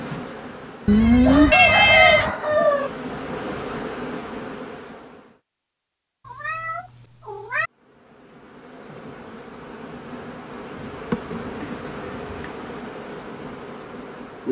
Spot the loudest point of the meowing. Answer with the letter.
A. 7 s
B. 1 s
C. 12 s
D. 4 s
B.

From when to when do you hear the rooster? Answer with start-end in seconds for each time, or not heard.
1.2-2.9.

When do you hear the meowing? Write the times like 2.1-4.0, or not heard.
0.8-2.4, 6.2-7.7, 10.9-12.5.